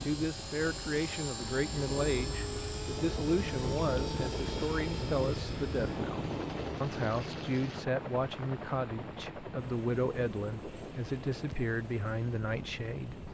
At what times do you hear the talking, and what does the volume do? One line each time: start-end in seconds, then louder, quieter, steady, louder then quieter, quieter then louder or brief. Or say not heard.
0.0-13.2 steady.